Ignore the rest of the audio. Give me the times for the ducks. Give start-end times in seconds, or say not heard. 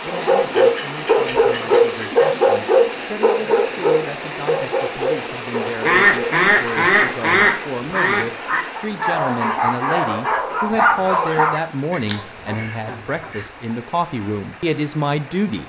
0.6-2.2, 5.8-8.7, 11.9-13.4.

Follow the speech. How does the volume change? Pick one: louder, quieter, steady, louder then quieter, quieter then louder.
louder.